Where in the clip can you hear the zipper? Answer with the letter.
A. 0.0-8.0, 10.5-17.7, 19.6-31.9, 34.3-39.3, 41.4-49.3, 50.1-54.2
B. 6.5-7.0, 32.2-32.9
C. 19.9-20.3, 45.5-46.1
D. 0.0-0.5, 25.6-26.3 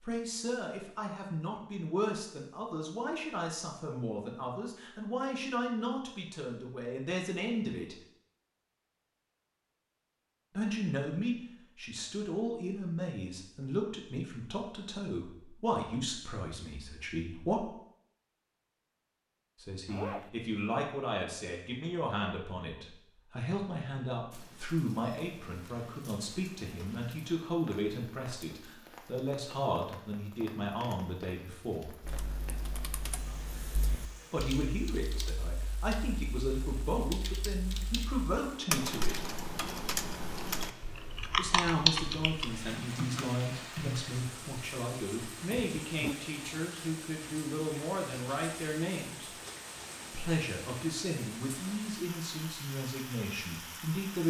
C.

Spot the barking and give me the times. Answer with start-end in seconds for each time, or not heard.
not heard.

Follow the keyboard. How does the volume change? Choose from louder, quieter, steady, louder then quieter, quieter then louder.
louder.